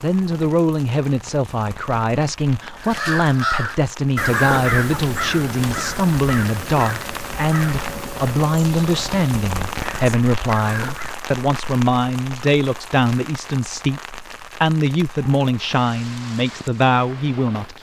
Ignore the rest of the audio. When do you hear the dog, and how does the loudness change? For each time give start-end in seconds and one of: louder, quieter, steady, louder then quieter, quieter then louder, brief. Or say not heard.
not heard.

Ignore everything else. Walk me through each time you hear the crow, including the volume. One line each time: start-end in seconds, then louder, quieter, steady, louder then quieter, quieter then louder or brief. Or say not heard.
2.8-11.2 quieter.